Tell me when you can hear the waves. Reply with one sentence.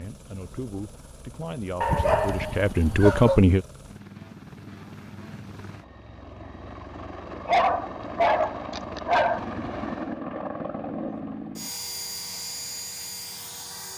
The waves can't be heard in this clip.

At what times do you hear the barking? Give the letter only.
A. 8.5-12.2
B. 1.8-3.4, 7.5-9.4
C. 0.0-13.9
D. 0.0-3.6
B.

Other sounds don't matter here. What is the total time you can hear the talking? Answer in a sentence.
The talking can be heard for 4 seconds in total.